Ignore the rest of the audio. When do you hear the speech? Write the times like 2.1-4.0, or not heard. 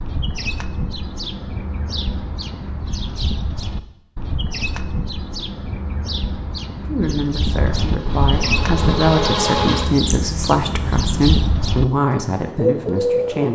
6.8-13.4.